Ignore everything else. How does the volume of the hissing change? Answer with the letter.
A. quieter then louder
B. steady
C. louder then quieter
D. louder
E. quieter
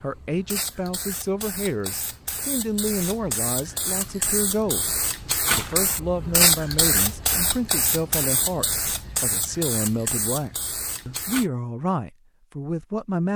C.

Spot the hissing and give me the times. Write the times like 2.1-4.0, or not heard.
0.0-11.4.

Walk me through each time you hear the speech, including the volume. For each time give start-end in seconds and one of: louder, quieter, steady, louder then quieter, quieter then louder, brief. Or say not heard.
0.0-13.3 steady.